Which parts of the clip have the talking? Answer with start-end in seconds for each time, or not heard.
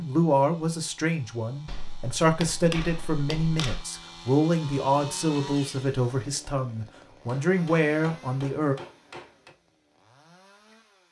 0.0-8.8.